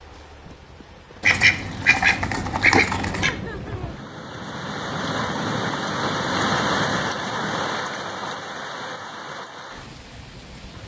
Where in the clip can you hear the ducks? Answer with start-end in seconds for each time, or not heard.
1.2-3.3.